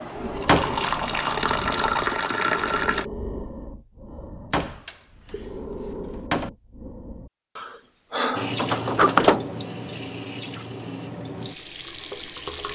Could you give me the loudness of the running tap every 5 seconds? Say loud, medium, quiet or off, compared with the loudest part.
loud, medium, medium.